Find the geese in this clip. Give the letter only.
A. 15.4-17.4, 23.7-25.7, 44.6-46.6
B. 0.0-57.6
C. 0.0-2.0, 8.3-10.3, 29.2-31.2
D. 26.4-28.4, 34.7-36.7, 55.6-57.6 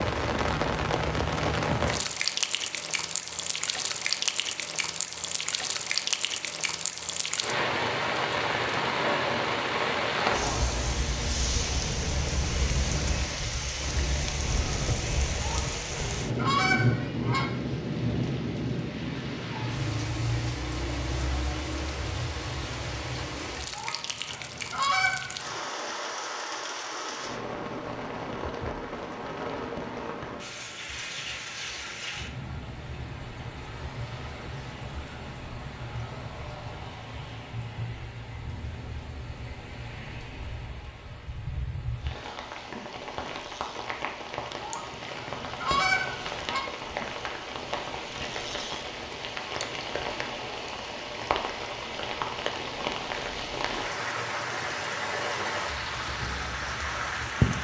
A.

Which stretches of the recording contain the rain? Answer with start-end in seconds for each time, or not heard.
0.0-57.6.